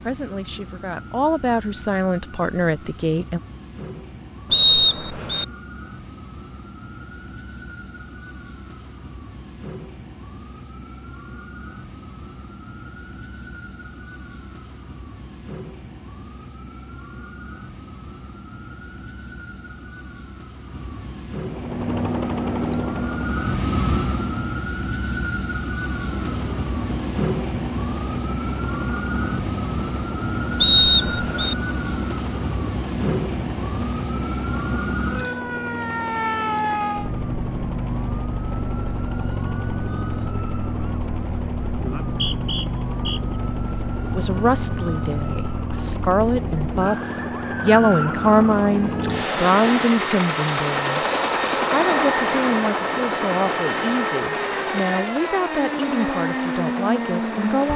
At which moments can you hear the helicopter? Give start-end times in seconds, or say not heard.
21.4-24.6, 25.9-57.7.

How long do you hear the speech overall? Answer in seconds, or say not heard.
16 s.